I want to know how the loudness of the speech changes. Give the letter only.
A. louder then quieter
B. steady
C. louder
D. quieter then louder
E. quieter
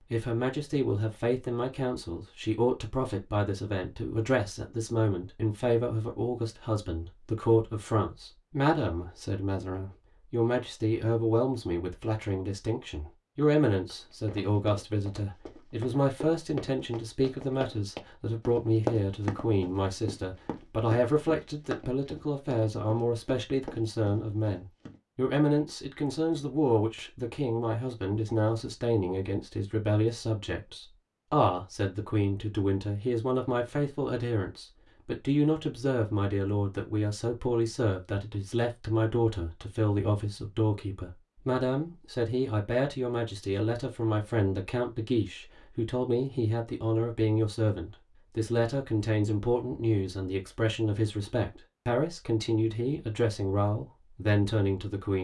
B.